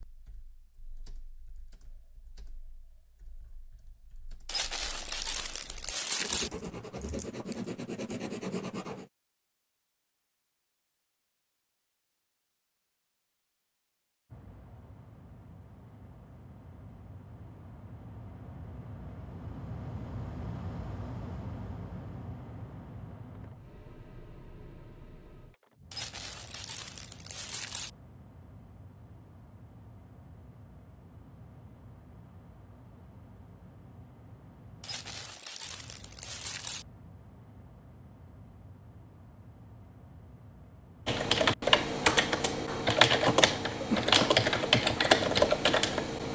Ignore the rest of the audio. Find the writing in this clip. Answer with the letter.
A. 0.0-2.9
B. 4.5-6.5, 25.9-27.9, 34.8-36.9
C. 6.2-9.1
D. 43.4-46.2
C.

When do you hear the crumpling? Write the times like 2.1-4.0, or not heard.
4.5-6.5, 25.9-27.9, 34.8-36.9.